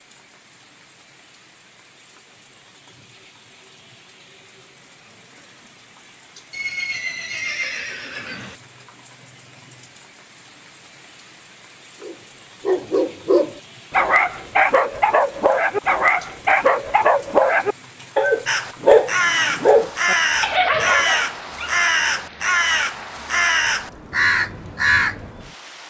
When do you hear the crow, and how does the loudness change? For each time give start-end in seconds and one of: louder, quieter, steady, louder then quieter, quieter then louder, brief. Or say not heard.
18.4-25.3 steady.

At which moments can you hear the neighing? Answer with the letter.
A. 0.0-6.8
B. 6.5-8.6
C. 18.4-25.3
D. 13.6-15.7
B.